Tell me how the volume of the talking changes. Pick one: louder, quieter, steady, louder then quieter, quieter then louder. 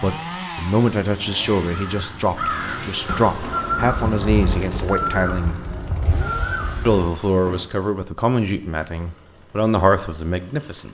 steady.